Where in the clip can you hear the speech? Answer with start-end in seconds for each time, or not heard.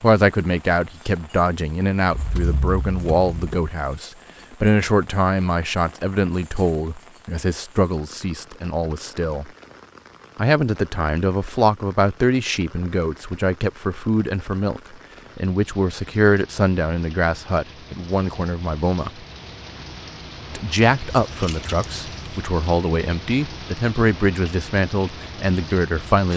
0.0-9.5, 10.3-19.1, 20.6-26.3.